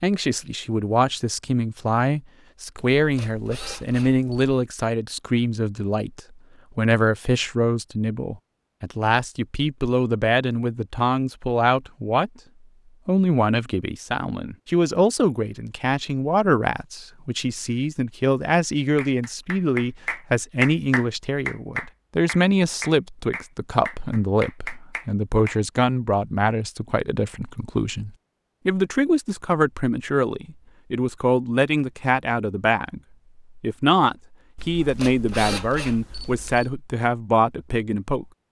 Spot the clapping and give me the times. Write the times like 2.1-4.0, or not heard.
18.9-25.6.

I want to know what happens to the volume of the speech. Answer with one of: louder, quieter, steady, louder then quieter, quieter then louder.
steady.